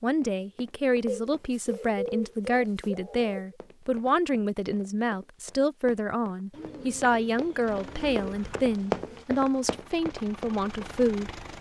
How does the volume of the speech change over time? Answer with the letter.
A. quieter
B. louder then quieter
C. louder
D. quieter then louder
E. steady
E.